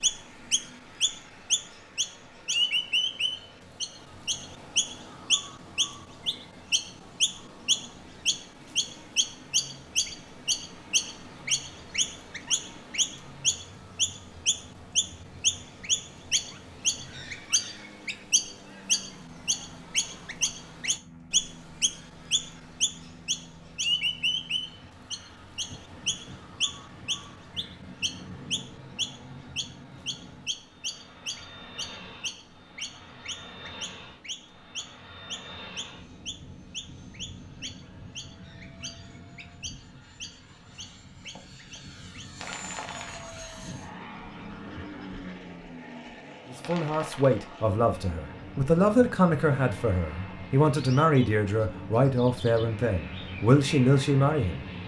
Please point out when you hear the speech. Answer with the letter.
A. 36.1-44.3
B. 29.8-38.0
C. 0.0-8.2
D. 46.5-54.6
D.